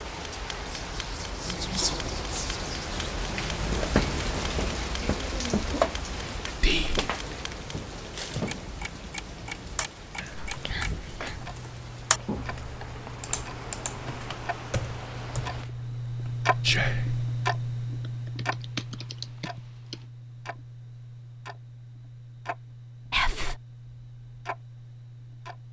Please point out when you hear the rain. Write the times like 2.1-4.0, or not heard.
0.0-15.7.